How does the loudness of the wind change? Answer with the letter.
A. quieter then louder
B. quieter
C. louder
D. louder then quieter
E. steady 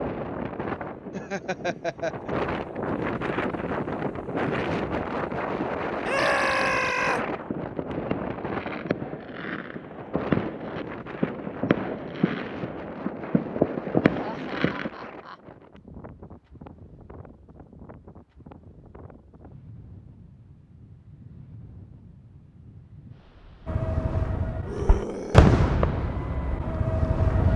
B.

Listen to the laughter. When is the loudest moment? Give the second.
2 s.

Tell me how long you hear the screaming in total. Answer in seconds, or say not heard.
2 s.